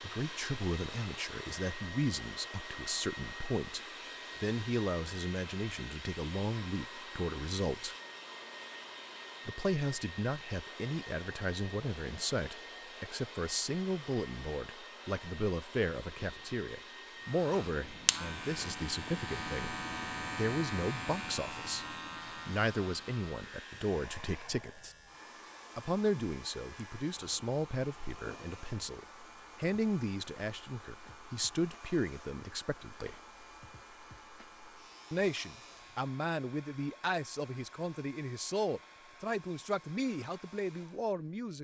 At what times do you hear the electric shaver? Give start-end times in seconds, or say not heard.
17.2-36.1.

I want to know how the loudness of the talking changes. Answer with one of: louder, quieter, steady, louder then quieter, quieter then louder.
steady.